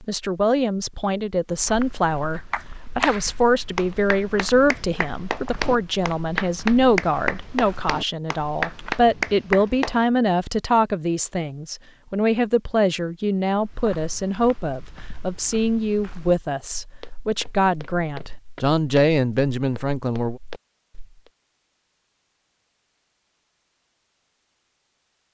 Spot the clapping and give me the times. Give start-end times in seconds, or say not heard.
2.3-10.1.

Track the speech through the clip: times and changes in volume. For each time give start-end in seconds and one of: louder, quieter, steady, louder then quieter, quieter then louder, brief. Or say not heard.
0.0-20.4 steady.